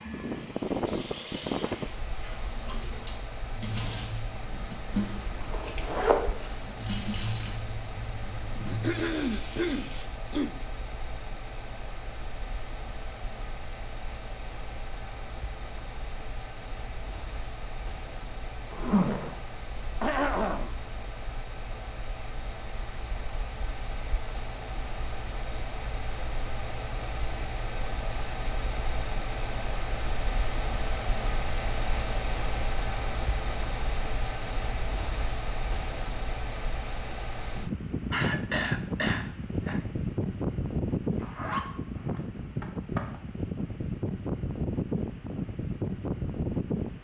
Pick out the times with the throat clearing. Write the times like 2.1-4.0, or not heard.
8.7-10.6, 20.0-20.8, 38.1-39.9.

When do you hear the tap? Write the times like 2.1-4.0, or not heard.
0.0-10.1.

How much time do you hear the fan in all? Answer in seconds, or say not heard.
47 s.